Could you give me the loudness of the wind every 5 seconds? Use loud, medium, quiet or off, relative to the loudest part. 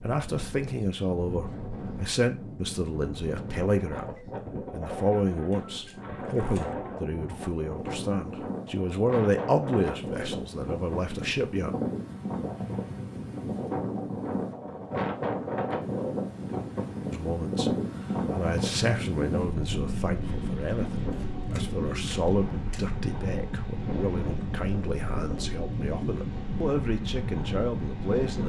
medium, medium, loud, loud, loud, loud.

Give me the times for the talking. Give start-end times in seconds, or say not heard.
0.0-11.8, 17.1-28.4.